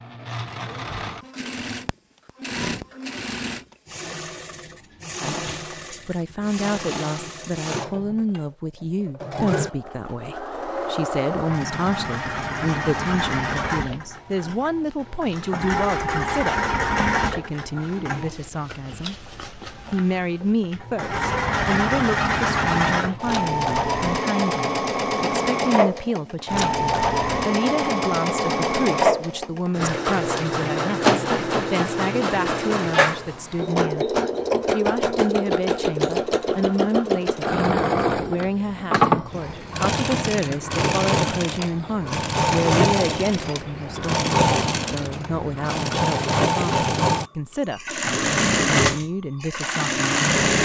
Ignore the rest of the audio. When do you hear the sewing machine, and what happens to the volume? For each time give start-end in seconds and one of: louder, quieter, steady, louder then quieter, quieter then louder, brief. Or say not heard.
0.0-50.6 louder.